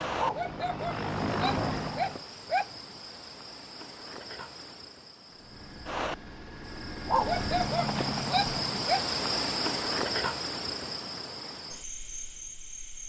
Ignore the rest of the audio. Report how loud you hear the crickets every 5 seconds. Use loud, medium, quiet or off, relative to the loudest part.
medium, loud, loud.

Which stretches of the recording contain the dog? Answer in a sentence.
The dog can be heard from 0.1 to 2.6 s and from 7.0 to 9.0 s.